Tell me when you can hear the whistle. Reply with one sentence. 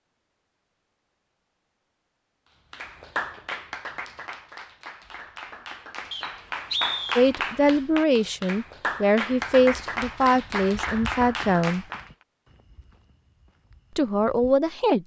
The whistle can be heard from 6.1 to 7.2 s.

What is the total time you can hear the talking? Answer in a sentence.
You can hear the talking for 6 seconds altogether.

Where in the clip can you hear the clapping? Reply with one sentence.
You can hear the clapping from 2.7 to 12.1 s.